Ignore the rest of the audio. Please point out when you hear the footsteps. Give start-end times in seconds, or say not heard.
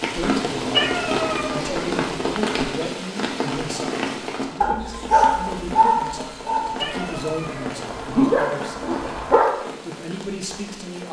not heard.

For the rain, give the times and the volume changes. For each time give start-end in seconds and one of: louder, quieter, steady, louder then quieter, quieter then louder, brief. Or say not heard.
0.0-11.0 quieter.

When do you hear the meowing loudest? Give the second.
1 s.